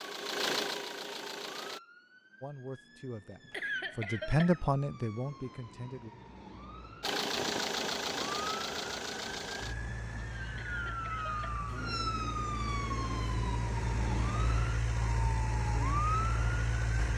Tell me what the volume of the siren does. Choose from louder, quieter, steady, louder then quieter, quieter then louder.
louder.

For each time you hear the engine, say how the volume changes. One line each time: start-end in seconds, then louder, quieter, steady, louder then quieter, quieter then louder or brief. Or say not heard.
0.0-1.8 brief
7.0-17.1 quieter then louder.